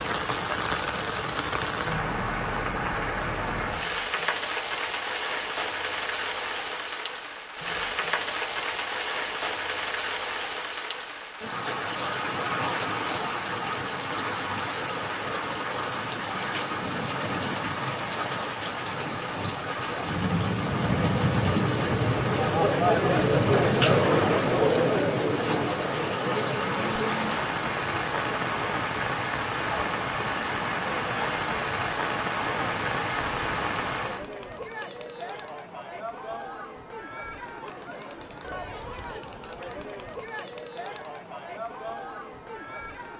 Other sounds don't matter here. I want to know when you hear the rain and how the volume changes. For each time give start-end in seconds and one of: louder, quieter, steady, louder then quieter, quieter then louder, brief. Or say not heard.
0.0-34.2 steady.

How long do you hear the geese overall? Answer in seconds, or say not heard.
not heard.